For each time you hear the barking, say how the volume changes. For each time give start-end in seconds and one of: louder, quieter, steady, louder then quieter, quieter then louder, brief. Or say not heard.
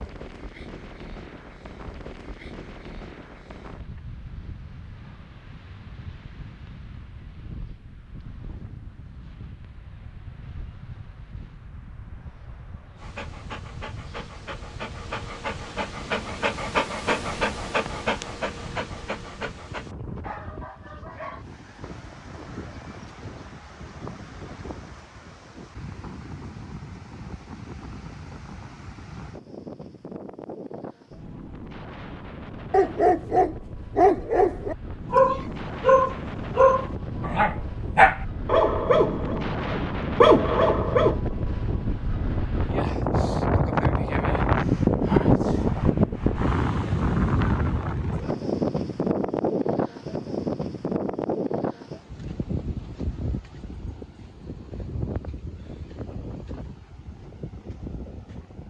12.9-21.4 louder then quieter
32.7-41.2 steady.